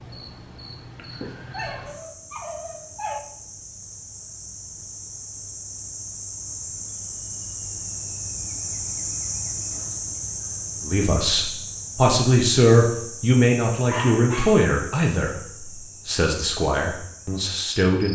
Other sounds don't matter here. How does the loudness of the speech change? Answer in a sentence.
The volume of the speech goes down.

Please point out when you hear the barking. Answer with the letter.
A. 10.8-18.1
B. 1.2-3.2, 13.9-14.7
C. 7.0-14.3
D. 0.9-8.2
B.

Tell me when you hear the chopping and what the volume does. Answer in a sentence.
The chopping can't be heard in this clip.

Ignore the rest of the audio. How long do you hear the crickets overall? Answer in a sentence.
The crickets can be heard for 18 seconds in total.